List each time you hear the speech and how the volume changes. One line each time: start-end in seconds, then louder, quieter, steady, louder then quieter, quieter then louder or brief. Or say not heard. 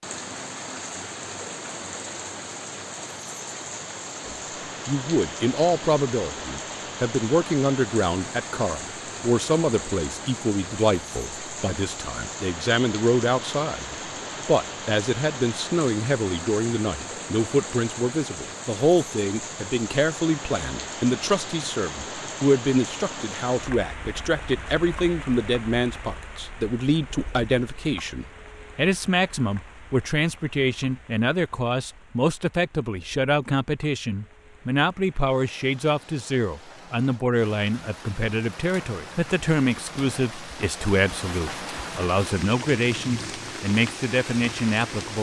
4.2-45.1 steady.